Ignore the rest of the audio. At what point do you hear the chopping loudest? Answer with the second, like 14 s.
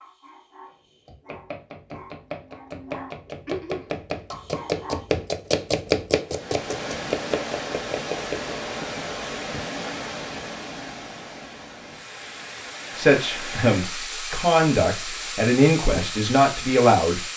6 s.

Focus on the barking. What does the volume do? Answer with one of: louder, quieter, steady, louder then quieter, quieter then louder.
louder then quieter.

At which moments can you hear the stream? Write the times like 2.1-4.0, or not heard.
6.2-17.3.